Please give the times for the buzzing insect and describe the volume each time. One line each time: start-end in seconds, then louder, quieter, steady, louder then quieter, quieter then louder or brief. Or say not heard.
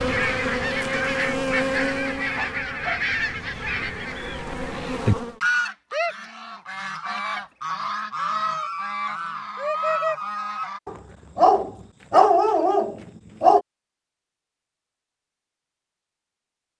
0.0-5.4 quieter then louder.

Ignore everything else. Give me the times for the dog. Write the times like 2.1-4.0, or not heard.
2.4-4.0, 10.8-13.6.